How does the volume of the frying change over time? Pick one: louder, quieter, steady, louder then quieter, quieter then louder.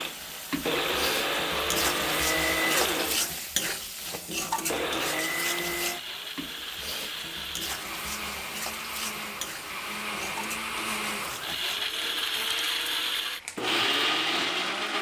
quieter.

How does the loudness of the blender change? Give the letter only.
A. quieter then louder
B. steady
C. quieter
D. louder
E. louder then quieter
A.